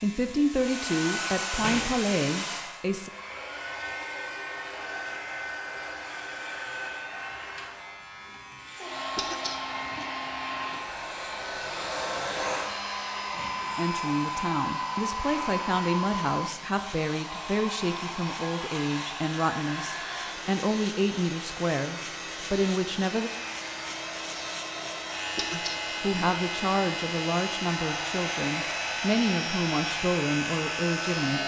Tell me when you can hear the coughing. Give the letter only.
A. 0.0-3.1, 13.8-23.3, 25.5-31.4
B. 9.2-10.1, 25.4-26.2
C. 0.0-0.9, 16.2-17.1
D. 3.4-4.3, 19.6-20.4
B.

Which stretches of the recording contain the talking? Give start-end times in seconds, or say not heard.
0.0-3.1, 13.8-23.3, 25.5-31.4.